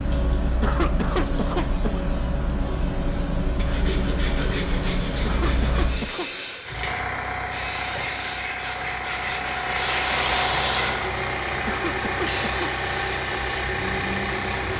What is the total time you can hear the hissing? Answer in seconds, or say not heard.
15 s.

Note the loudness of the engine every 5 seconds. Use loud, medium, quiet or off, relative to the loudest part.
off, loud, loud.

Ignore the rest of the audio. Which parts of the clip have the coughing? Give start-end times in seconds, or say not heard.
0.5-2.0, 5.2-6.3, 11.5-12.7.